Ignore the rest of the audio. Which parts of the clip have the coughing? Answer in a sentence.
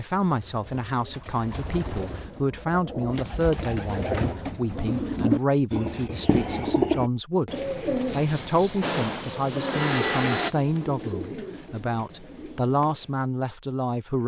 The coughing can't be heard in this clip.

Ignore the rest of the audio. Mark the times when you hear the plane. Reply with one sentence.
The plane can be heard from 8.8 to 10.5 s.